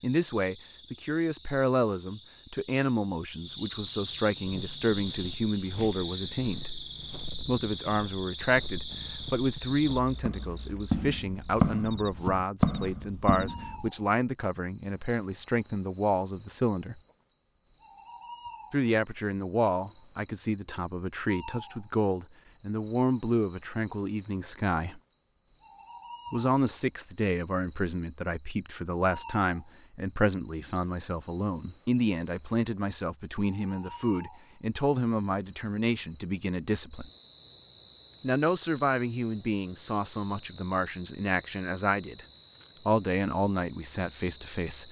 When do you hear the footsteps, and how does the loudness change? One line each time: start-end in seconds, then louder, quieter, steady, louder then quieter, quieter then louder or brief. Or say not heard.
4.5-13.9 louder.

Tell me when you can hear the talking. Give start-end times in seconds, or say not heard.
0.0-6.7, 7.5-17.0, 18.7-25.0, 26.3-37.1, 38.2-42.2, 42.9-44.8.